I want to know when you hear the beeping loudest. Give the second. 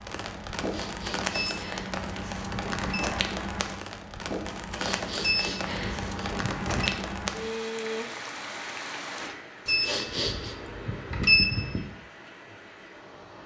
11 s.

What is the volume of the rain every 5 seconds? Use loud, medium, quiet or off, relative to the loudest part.
loud, loud, quiet.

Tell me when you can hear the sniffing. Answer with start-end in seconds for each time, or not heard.
0.7-1.9, 4.8-6.3, 9.8-10.6.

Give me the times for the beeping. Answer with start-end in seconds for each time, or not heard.
1.3-3.0, 5.2-6.9, 9.7-11.8.